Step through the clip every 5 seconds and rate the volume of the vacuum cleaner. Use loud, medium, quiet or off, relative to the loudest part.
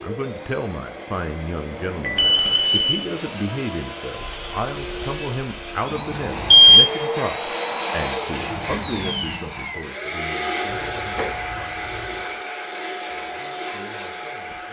medium, loud, loud.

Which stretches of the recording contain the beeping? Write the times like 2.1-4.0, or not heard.
1.7-3.0, 6.1-6.9, 10.7-12.2.